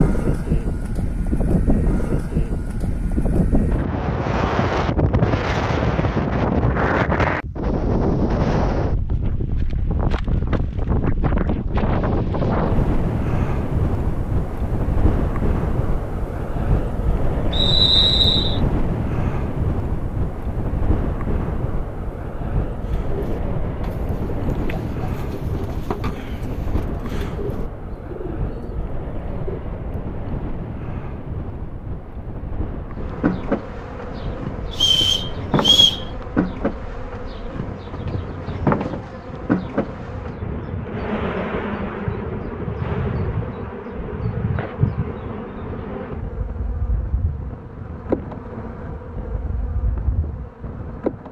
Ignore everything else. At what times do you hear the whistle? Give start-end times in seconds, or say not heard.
17.5-18.6, 34.7-36.0.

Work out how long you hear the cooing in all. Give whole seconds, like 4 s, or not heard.
7 s.